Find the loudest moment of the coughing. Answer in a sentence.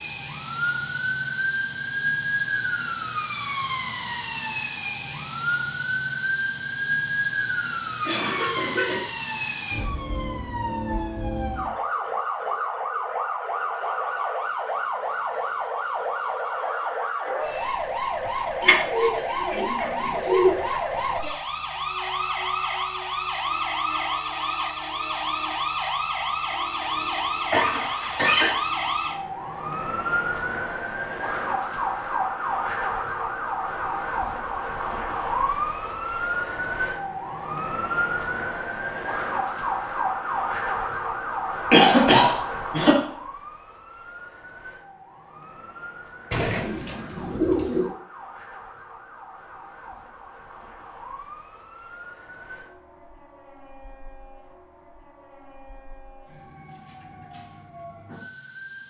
The loudest moment of the coughing is at 42 seconds.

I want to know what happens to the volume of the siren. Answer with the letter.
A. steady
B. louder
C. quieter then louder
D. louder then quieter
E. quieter
E.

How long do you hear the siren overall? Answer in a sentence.
The siren can be heard for 59 seconds in total.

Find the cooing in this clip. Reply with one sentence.
The cooing can be heard from 18.6 to 20.6 s and from 46.3 to 47.9 s.